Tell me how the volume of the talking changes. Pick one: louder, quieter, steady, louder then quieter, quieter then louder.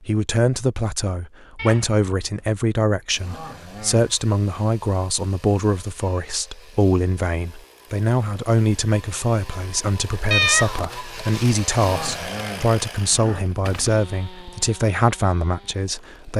steady.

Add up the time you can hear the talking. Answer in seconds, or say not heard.
16 s.